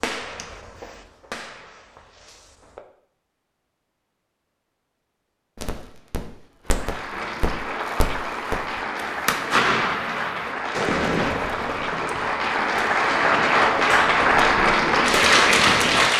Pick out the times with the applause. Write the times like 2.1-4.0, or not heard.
6.7-16.1.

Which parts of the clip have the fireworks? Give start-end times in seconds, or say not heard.
0.0-2.9, 5.5-16.1.